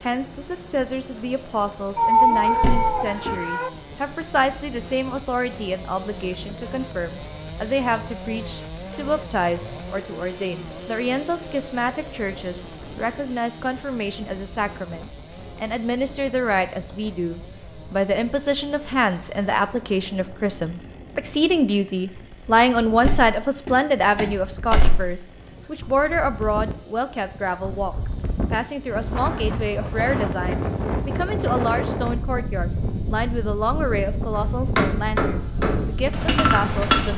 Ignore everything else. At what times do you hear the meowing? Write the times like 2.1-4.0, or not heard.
1.9-3.7.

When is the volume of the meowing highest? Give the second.
2 s.